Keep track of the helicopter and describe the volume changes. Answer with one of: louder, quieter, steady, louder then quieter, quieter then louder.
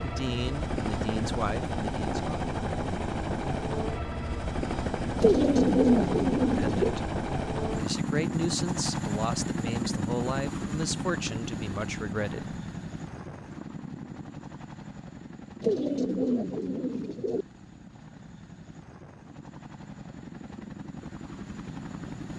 quieter.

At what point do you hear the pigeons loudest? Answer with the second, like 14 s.
6 s.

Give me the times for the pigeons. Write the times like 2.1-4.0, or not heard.
5.2-7.0, 15.6-17.4.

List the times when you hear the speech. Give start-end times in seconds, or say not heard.
0.0-2.4, 6.5-7.0, 7.8-12.6.